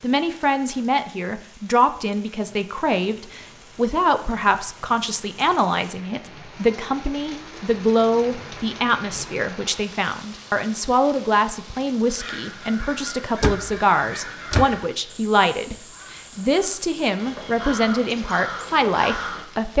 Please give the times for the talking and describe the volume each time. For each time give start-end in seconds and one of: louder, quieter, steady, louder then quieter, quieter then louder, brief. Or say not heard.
0.0-19.7 steady.